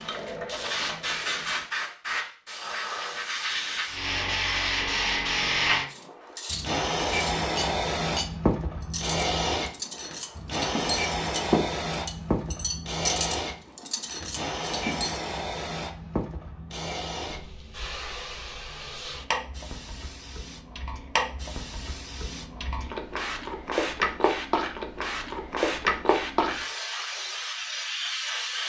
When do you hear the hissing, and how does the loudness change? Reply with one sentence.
The hissing can be heard from 0.0 to 28.6 s, getting quieter then louder.